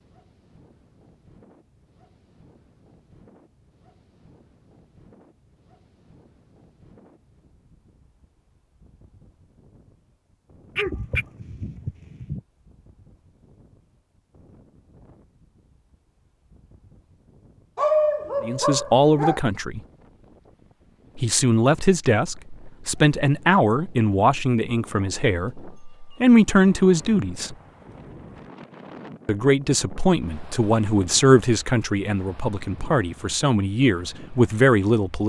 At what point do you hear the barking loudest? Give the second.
18 s.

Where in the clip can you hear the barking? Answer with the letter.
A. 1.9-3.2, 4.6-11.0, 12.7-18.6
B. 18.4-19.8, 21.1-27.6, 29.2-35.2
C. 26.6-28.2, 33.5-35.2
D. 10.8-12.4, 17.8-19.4
D.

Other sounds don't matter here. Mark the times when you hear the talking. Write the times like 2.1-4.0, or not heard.
18.4-19.8, 21.1-27.6, 29.2-35.2.